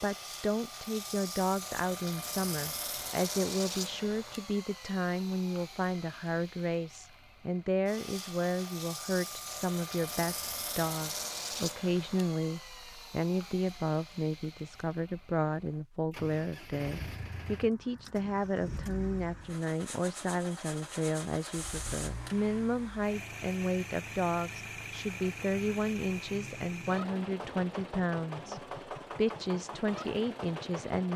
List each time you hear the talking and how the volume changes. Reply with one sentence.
The talking can be heard from 0.0 to 31.1 s, at a steady volume.